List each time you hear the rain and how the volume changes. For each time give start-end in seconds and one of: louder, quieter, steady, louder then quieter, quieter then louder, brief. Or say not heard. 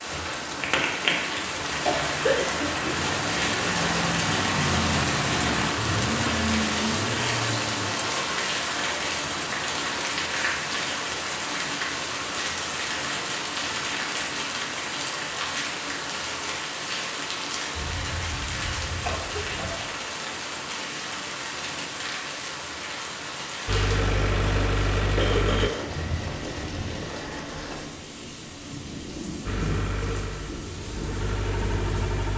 0.0-32.3 quieter.